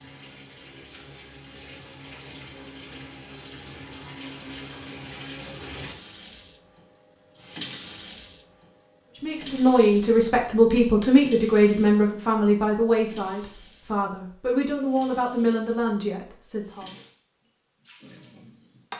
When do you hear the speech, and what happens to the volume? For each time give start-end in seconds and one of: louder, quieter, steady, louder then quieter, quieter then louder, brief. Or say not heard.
9.2-16.9 quieter.